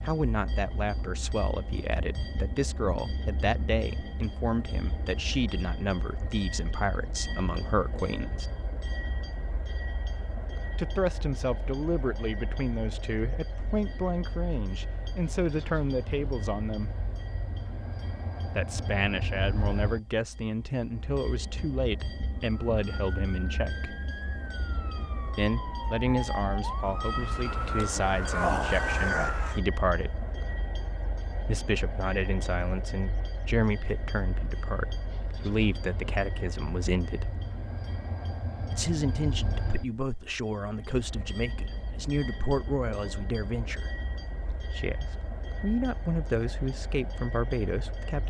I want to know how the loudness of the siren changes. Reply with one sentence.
The loudness of the siren goes up.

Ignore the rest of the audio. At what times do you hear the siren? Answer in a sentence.
You can hear the siren from 22.4 to 29.6 s.